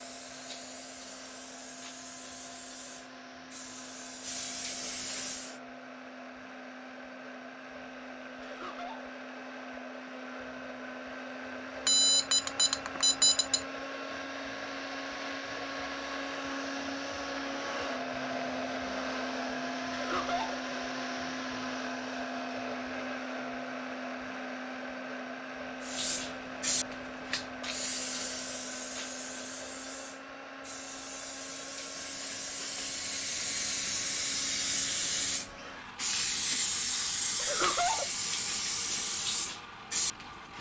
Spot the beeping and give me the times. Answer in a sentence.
You can hear the beeping from 11.8 to 13.7 s.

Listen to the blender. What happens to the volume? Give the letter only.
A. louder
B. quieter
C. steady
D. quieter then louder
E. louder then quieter
E.